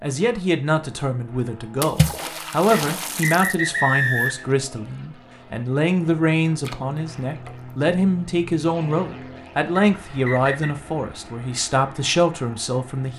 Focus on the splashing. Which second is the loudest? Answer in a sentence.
The loudest moment of the splashing is at 2 seconds.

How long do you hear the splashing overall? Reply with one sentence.
The splashing can be heard for 3 seconds in total.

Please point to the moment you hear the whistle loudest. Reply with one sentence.
The volume of the whistle peaks at 4 seconds.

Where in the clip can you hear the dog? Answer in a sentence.
You can't hear the dog here.